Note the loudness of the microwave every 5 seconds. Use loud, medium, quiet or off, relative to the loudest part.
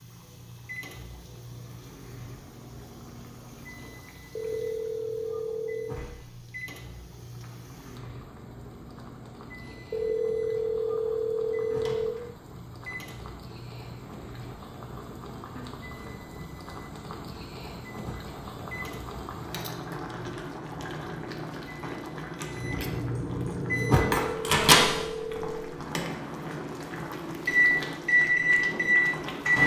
quiet, quiet, quiet, quiet, loud, loud.